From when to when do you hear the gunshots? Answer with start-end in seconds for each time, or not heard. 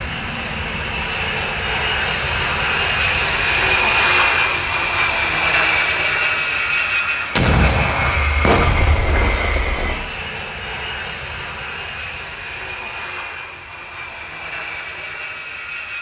7.3-10.1.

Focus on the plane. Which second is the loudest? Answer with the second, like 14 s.
4 s.